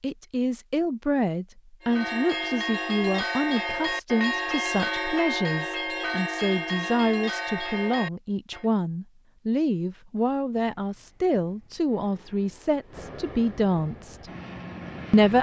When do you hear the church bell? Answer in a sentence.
The church bell can be heard from 1.8 to 8.7 s.